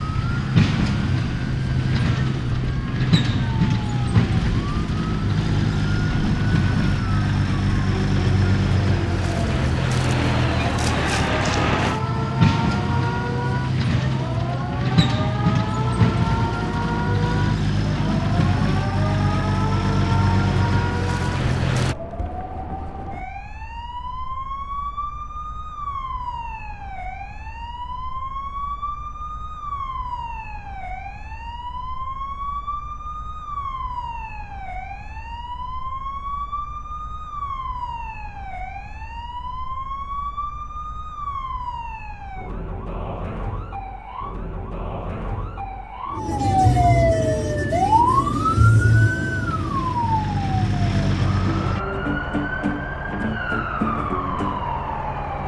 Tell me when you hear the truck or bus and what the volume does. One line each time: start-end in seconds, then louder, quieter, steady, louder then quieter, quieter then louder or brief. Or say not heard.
0.0-21.9 steady
47.2-51.8 louder.